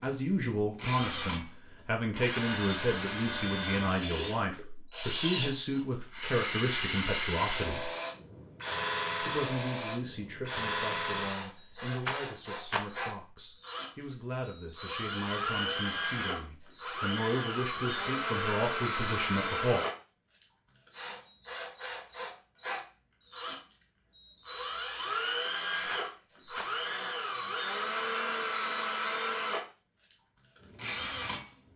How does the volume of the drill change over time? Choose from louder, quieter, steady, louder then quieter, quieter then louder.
steady.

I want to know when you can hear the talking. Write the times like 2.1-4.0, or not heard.
0.0-7.9, 9.2-19.9.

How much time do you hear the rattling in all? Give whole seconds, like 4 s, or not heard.
2 s.